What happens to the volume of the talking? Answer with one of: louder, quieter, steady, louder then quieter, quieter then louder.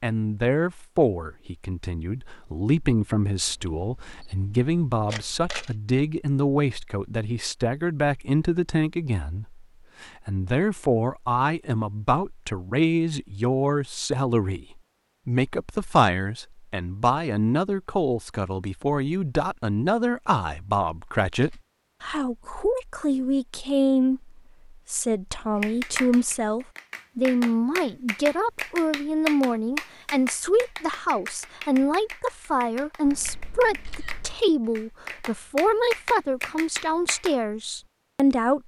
steady.